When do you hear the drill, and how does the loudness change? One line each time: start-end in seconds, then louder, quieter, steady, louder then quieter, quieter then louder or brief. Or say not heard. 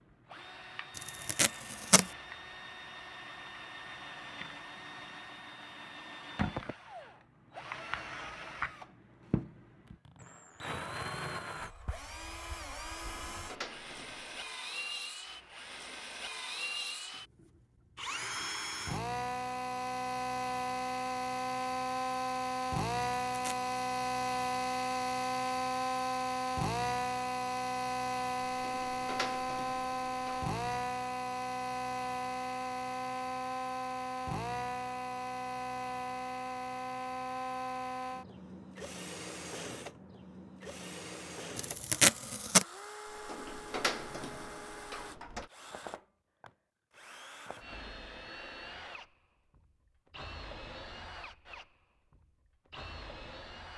0.0-53.7 louder then quieter.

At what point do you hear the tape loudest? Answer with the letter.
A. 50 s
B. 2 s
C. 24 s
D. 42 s
D.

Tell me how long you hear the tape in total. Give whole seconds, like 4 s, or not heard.
3 s.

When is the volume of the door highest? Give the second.
44 s.